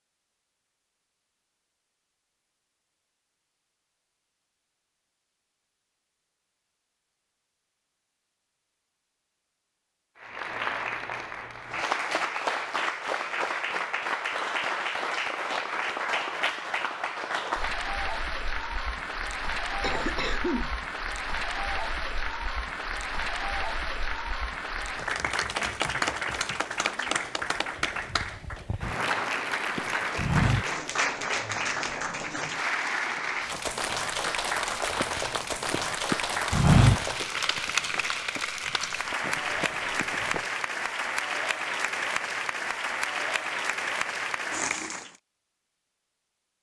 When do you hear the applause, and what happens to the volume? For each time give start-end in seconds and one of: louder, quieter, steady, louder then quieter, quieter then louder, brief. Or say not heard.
10.2-45.1 steady.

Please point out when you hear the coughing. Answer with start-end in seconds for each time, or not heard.
19.8-20.7.